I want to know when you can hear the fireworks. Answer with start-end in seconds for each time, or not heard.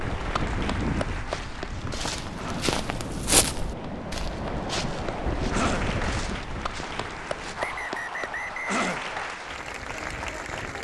not heard.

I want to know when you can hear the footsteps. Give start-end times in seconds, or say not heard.
1.1-7.8.